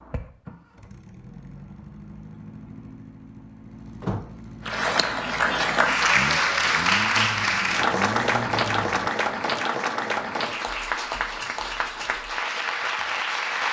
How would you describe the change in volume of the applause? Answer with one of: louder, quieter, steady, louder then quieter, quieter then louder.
quieter.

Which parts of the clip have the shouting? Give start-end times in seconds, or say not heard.
not heard.